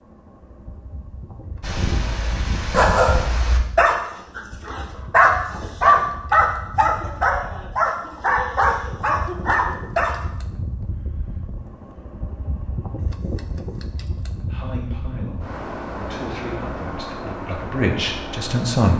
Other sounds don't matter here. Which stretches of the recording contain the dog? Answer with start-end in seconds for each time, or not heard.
1.6-10.2.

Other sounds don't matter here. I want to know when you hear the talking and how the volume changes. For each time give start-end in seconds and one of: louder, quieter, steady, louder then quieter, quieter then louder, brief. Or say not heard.
14.5-18.9 louder.